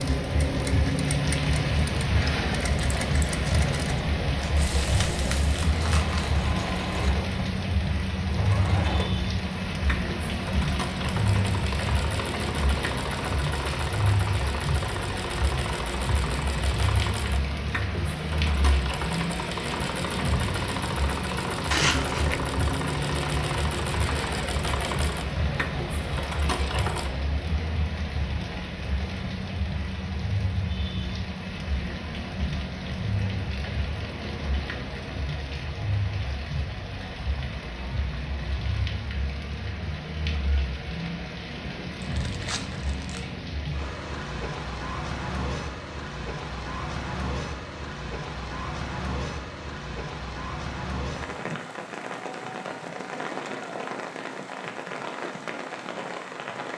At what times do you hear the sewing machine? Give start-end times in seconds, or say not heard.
0.0-27.1.